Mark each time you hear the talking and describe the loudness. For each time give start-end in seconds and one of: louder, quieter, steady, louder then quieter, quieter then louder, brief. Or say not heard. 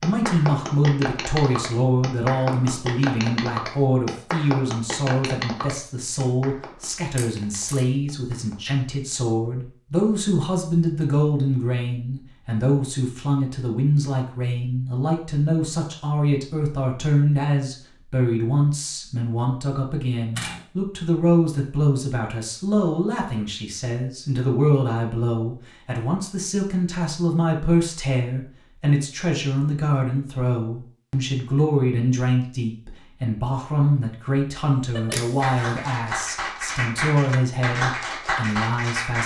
0.0-39.2 steady.